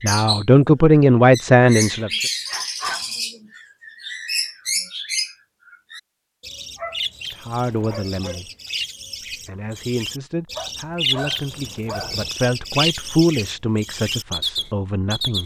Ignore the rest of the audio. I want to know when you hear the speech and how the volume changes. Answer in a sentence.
The speech can be heard briefly from 0.0 to 2.2 s; briefly from 7.5 to 8.4 s; and from 9.4 to 15.4 s, getting louder then quieter.